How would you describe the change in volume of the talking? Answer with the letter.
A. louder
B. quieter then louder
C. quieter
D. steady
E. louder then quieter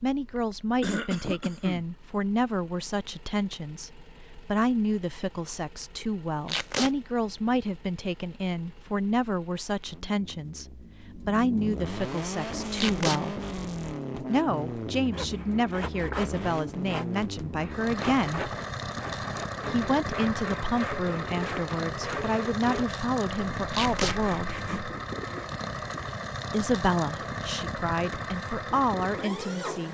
D.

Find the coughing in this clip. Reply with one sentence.
You can hear the coughing from 0.8 to 1.9 s.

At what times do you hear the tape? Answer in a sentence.
The tape can be heard from 6.5 to 6.9 s, from 12.8 to 13.2 s and from 23.7 to 24.1 s.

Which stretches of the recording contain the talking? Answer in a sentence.
You can hear the talking from 0.0 to 13.4 s, from 14.2 to 18.5 s, from 19.6 to 24.6 s and from 26.5 to 29.8 s.